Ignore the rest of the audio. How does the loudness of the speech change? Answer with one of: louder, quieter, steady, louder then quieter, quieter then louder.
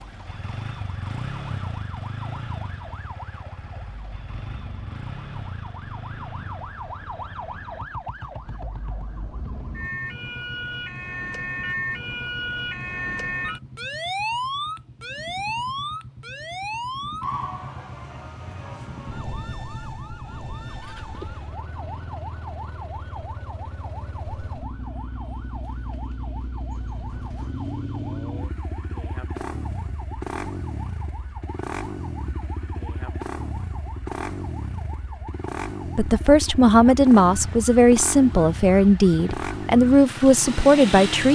steady.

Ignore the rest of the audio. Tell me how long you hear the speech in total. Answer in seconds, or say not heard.
5 s.